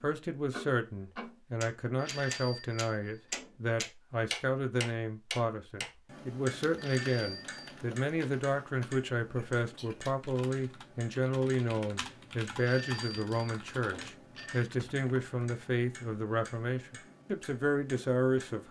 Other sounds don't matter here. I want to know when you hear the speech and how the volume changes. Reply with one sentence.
The speech can be heard from 0.0 to 18.6 s, at a steady volume.